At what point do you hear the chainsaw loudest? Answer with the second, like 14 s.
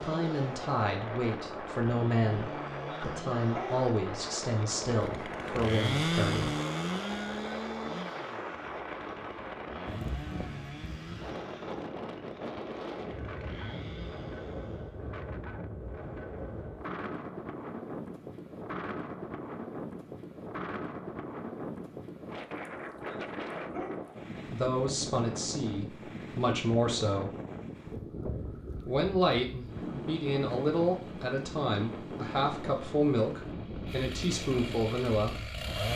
6 s.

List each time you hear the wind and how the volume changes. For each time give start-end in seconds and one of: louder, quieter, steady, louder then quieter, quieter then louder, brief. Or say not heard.
0.0-35.9 steady.